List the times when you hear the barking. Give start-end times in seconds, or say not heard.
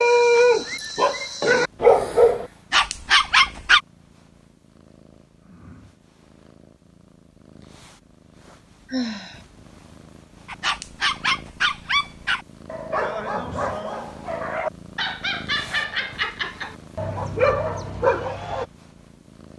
0.0-3.8, 10.5-18.6.